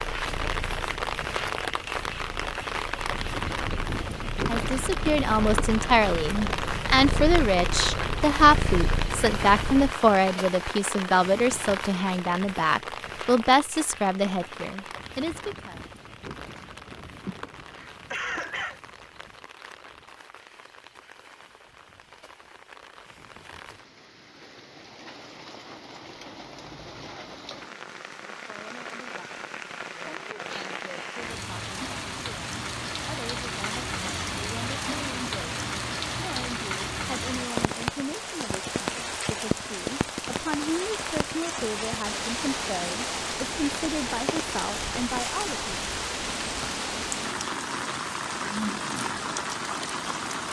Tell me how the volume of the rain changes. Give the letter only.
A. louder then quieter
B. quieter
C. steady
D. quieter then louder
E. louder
D.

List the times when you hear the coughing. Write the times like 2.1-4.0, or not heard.
17.2-18.8.